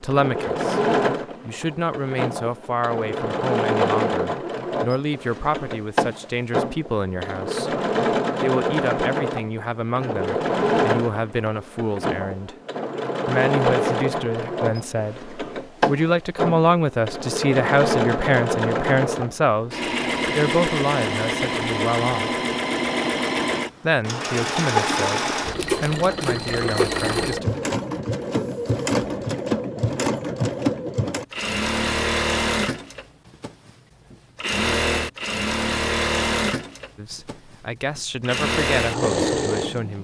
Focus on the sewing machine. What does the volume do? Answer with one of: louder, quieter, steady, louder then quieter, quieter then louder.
steady.